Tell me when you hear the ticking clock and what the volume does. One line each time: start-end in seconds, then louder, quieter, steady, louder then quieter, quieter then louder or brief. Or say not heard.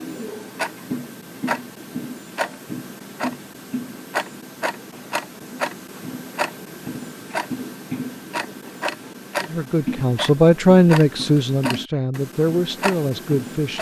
0.0-13.7 steady.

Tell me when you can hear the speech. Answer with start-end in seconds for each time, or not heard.
9.4-13.7.